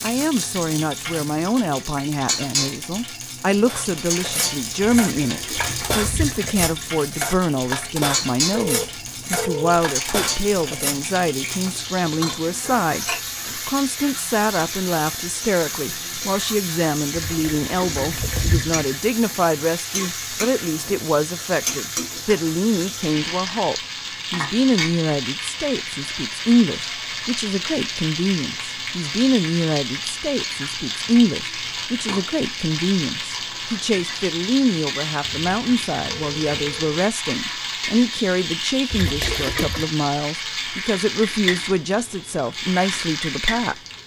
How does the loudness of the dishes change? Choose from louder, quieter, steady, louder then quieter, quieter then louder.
steady.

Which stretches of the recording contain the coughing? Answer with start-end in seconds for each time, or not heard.
not heard.